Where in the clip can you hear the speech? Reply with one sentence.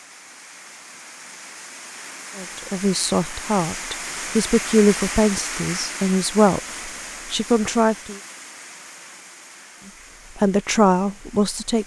The speech can be heard from 2.4 to 8.2 s and from 10.3 to 11.8 s.